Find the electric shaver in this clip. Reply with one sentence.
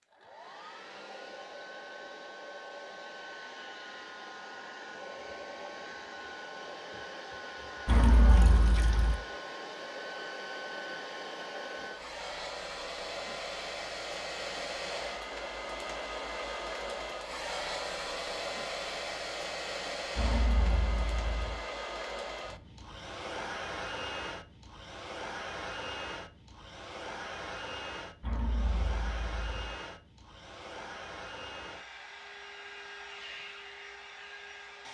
The electric shaver can't be heard in this clip.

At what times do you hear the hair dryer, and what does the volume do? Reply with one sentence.
The hair dryer can be heard from 0.0 to 34.8 s, getting louder then quieter.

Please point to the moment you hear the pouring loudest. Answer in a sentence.
The volume of the pouring peaks at 8 seconds.